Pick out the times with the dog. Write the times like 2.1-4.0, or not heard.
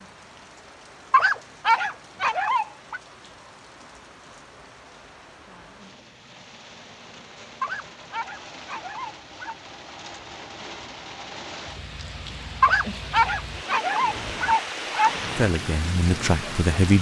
1.1-3.0, 7.6-9.6, 12.6-15.2.